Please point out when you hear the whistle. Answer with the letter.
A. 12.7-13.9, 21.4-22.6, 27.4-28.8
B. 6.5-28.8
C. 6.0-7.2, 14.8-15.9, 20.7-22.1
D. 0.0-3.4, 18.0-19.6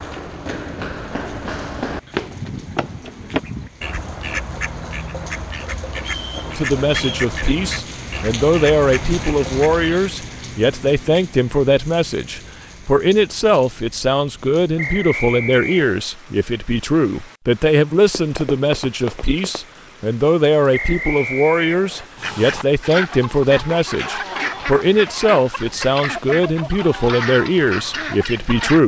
C.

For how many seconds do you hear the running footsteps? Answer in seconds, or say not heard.
5 s.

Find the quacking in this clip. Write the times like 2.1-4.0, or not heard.
2.0-10.0, 22.1-28.8.